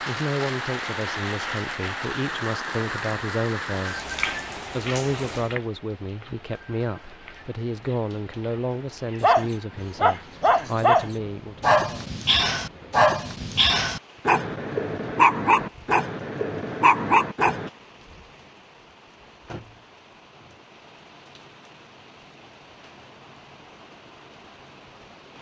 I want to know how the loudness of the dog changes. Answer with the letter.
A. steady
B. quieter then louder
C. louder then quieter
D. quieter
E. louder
A.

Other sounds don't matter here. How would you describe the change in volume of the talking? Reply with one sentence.
The volume of the talking stays about the same.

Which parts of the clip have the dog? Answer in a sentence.
The dog can be heard from 9.2 to 17.7 s.